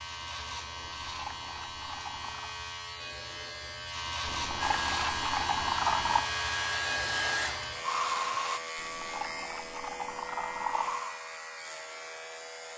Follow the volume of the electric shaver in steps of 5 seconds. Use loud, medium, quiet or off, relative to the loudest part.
loud, loud, medium.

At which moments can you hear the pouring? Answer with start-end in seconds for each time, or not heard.
0.8-2.5, 4.2-6.2, 8.8-11.0.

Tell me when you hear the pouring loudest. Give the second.
6 s.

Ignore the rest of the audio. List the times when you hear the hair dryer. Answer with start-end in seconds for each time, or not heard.
4.6-8.6, 10.7-12.7.